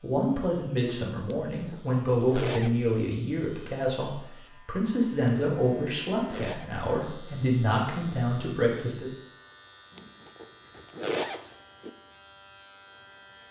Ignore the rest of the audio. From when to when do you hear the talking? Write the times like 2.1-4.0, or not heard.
0.0-9.1.